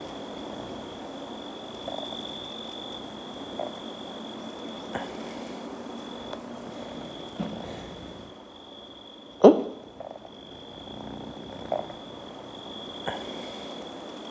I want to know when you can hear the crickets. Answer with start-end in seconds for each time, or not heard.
0.0-14.2.